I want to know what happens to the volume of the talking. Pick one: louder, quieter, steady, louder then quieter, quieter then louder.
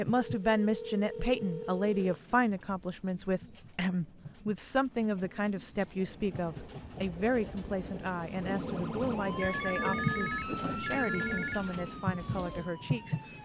quieter.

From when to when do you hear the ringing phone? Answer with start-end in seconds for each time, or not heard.
0.1-2.4, 9.3-11.6.